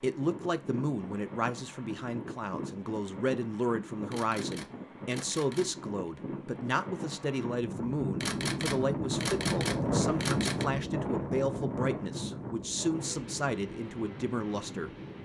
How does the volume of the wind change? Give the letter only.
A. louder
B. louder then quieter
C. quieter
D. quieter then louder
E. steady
B.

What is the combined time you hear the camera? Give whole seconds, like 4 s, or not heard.
4 s.